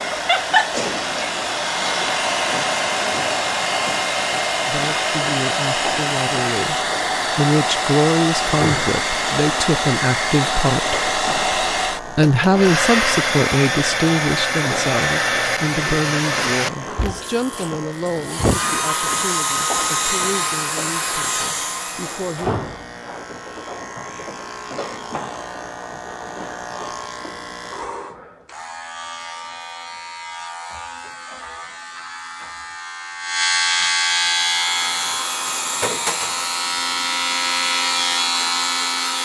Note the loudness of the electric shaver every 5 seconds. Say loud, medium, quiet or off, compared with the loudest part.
medium, medium, medium, medium, medium, medium, loud, loud.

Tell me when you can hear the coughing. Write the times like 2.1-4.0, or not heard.
0.7-1.4.